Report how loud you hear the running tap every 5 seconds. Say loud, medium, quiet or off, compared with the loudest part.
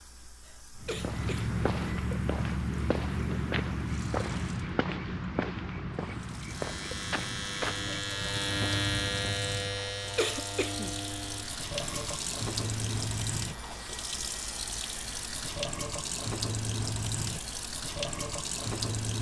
quiet, medium, loud, loud.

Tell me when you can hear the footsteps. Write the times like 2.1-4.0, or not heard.
0.8-9.3.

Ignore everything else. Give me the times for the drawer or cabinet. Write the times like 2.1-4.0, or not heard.
not heard.